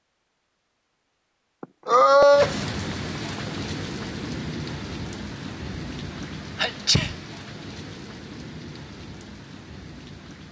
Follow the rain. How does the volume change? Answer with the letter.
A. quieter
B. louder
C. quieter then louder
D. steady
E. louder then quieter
A.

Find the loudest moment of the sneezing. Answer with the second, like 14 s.
2 s.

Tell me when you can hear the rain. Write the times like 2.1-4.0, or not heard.
2.3-10.4.